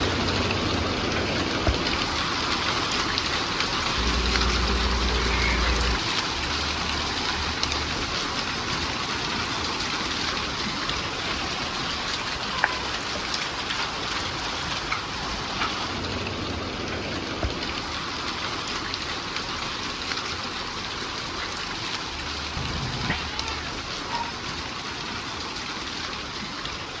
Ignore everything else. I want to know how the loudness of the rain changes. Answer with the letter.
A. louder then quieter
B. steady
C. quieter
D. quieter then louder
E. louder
C.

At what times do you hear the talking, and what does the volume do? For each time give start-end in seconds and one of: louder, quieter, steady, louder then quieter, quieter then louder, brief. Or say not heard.
not heard.